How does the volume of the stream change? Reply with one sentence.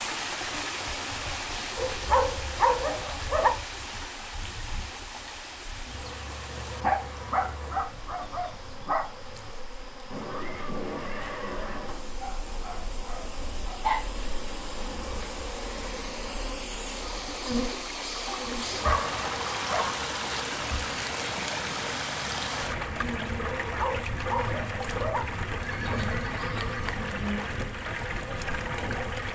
The volume of the stream goes down, then up.